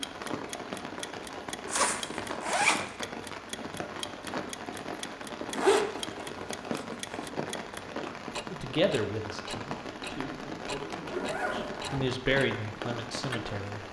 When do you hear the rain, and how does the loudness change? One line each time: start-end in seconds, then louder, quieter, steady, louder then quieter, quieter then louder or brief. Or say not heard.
0.0-13.8 steady.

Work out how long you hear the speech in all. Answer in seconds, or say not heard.
5 s.